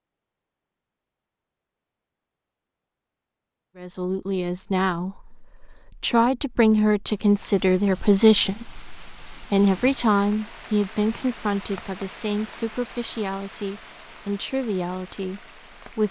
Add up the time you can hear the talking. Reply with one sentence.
You can hear the talking for 12 seconds altogether.